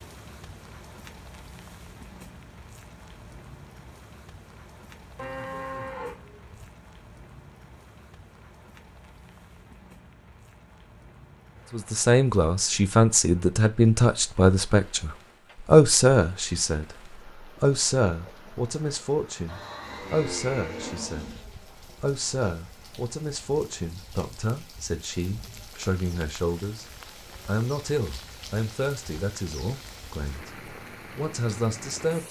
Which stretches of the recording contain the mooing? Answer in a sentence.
The mooing can be heard from 5.2 to 6.7 s and from 19.4 to 21.4 s.